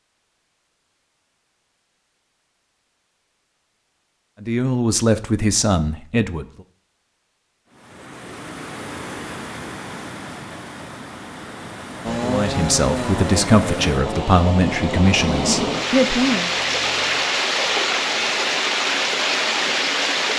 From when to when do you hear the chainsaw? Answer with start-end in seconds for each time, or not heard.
12.0-17.2.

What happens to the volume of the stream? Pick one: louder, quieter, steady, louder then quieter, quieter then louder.
louder.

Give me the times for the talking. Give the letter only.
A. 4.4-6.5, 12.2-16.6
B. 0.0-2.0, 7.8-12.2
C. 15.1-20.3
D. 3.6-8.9
A.